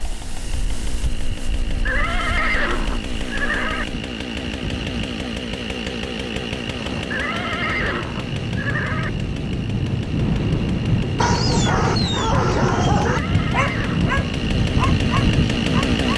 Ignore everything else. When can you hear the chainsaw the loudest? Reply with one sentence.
The loudest moment of the chainsaw is at 16 seconds.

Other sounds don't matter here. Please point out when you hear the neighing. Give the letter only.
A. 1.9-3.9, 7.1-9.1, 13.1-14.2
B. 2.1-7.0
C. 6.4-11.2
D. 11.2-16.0
A.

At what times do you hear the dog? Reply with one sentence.
You can hear the dog from 11.2 to 16.0 s.